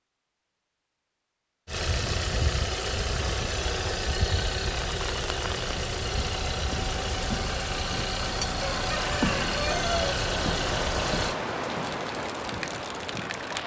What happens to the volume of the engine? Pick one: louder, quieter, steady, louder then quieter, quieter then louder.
steady.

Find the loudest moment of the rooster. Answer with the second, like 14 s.
10 s.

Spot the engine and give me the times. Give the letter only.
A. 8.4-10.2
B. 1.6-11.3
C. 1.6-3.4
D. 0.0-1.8
B.